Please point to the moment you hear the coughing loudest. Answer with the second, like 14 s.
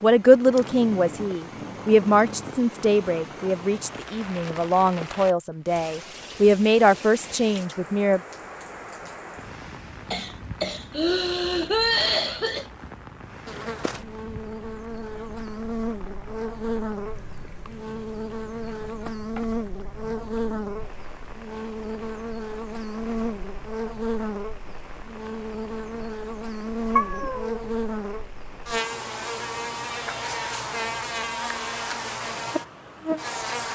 12 s.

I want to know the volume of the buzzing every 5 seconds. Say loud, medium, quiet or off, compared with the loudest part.
off, off, medium, loud, loud, loud, loud.